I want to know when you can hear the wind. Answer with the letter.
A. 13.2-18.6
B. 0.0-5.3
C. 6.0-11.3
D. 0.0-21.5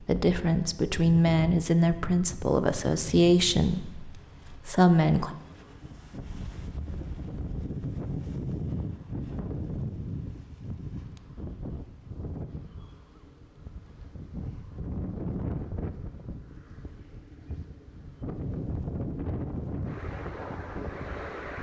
D.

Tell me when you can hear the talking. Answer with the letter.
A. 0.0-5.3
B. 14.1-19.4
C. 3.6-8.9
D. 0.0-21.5
A.